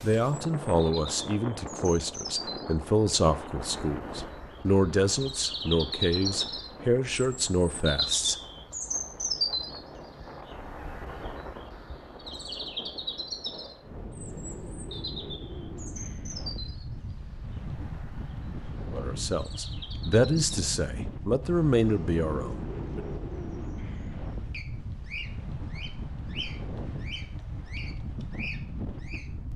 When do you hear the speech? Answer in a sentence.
The speech can be heard from 0.0 to 8.3 s and from 18.9 to 23.1 s.